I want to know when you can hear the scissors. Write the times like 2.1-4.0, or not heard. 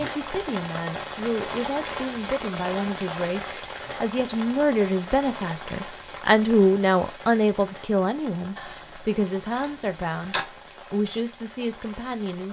8.6-10.4.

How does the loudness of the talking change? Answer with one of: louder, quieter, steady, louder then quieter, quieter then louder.
louder then quieter.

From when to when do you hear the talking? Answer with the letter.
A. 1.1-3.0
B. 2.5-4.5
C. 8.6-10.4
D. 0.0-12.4
D.